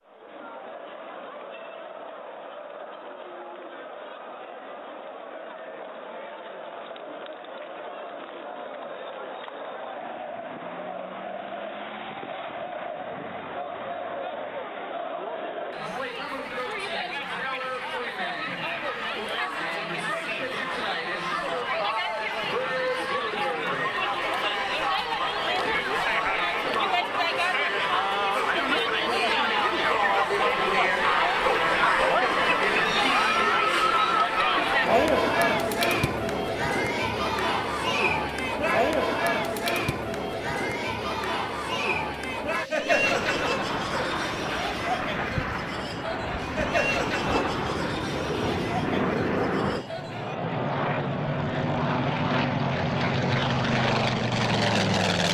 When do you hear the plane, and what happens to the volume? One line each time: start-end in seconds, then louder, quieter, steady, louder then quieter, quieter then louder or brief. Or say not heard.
42.8-55.2 louder.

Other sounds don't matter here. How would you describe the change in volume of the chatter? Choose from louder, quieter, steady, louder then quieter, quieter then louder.
louder then quieter.